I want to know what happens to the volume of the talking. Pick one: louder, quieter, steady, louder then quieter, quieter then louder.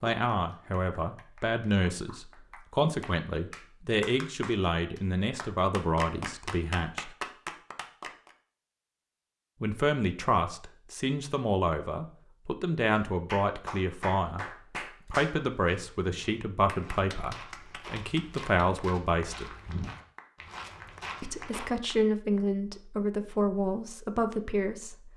steady.